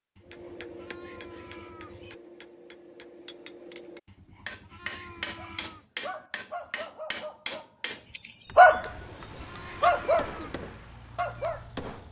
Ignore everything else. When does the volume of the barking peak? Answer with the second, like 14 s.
9 s.